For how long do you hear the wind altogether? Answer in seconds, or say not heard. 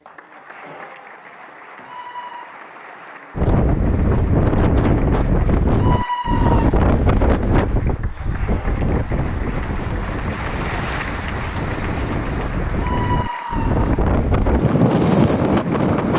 13 s.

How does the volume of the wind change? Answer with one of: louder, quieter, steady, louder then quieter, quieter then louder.
quieter then louder.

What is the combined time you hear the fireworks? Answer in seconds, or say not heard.
not heard.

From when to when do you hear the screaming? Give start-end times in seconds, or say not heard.
1.8-2.5, 5.8-6.7, 12.8-14.0.